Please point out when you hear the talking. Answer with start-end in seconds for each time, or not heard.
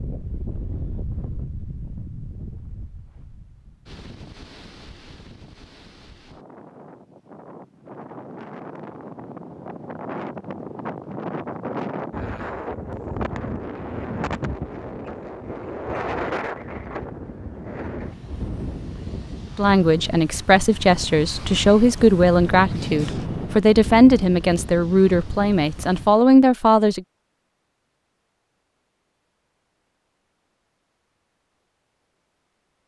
19.6-27.0.